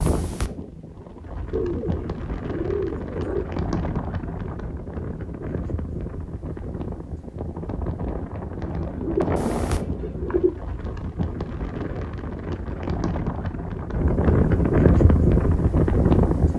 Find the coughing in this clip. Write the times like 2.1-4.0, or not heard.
not heard.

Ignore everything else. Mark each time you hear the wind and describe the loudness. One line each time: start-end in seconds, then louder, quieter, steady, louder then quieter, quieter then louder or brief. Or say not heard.
0.0-16.5 louder.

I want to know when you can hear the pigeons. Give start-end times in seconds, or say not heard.
1.5-3.5, 8.6-10.6.